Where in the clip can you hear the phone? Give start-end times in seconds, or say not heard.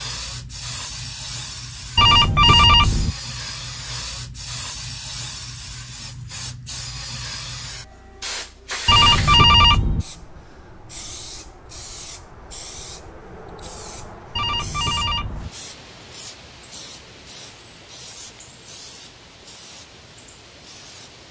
1.9-3.1, 8.8-10.1, 14.3-15.5.